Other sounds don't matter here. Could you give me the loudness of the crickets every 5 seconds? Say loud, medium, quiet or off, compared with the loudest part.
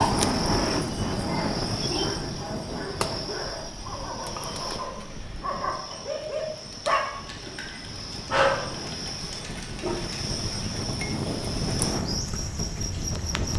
loud, medium, loud.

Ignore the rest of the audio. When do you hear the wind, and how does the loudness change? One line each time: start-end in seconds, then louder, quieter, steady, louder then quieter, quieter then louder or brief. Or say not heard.
0.0-13.5 quieter then louder.